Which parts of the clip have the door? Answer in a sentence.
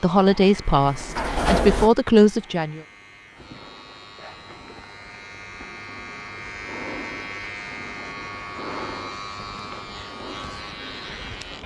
The door can be heard from 0.7 to 1.9 s.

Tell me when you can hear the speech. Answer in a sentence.
The speech can be heard from 0.0 to 2.8 s.